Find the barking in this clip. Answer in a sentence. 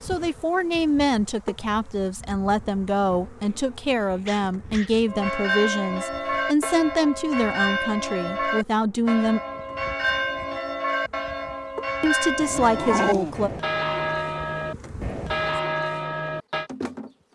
You can hear the barking from 3.0 to 5.0 s and from 12.3 to 13.4 s.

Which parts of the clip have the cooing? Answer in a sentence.
The cooing can't be heard in this clip.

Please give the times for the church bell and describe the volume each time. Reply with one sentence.
You can hear the church bell from 5.0 to 16.7 s, at a steady volume.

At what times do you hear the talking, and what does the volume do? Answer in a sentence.
You can hear the talking from 0.0 to 9.4 s, at a steady volume; and briefly from 12.0 to 13.5 s.